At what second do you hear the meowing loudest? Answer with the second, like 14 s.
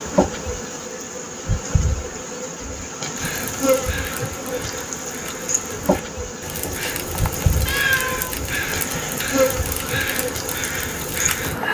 8 s.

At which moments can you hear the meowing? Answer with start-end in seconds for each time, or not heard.
6.5-8.3.